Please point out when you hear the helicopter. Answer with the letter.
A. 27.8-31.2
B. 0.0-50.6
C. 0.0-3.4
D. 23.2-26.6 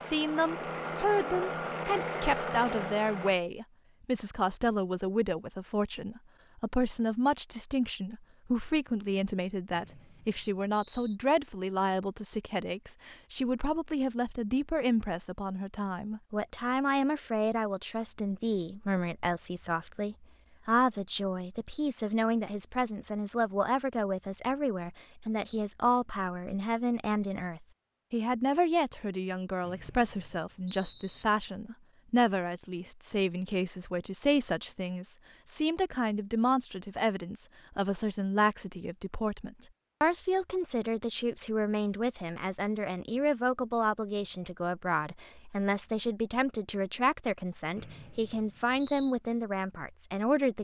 C.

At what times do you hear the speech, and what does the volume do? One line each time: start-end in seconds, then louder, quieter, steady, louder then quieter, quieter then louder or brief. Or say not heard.
0.0-50.6 steady.